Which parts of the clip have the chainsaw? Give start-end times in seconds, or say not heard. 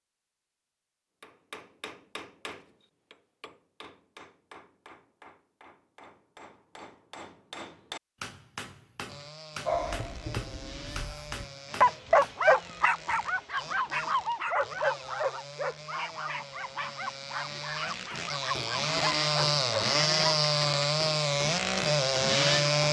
9.1-22.8.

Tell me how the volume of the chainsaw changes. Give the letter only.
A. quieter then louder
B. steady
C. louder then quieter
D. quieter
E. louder
E.